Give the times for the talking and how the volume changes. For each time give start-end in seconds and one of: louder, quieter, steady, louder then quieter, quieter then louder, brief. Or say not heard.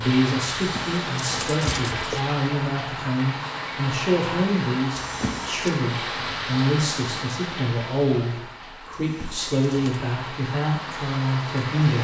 0.0-11.9 steady.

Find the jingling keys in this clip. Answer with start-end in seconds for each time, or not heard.
0.6-2.2, 5.0-5.8, 8.9-10.1.